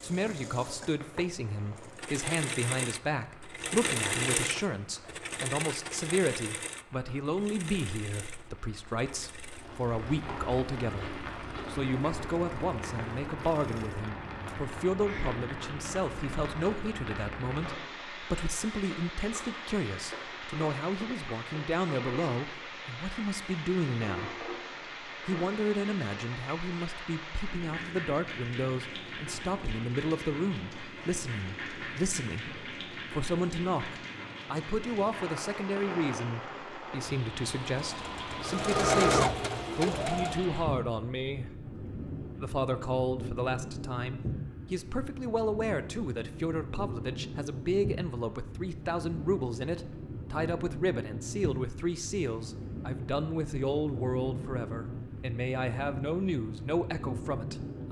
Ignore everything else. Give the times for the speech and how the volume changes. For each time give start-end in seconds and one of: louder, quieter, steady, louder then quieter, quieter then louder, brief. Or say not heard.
0.0-57.8 steady.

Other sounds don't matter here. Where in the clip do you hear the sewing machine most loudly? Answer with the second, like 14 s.
39 s.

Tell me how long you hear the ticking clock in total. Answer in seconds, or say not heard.
not heard.